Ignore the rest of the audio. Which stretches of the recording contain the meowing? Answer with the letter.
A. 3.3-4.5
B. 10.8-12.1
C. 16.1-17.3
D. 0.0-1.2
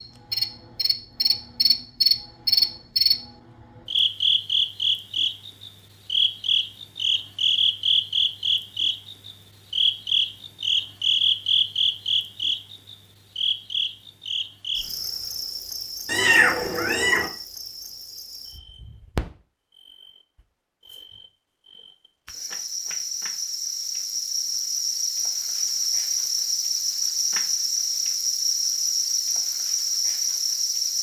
C.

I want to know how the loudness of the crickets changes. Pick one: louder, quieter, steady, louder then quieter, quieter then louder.
quieter then louder.